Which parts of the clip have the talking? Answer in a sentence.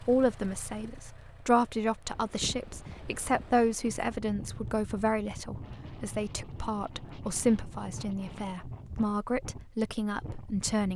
The talking can be heard from 0.0 to 10.9 s.